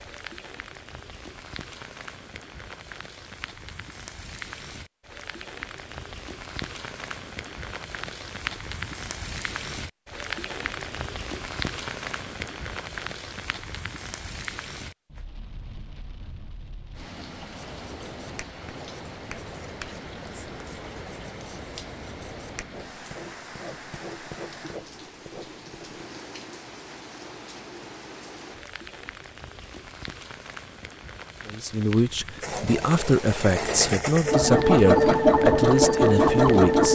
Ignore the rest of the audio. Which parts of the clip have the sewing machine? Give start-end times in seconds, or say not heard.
32.4-36.9.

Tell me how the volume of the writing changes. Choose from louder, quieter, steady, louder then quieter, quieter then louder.
steady.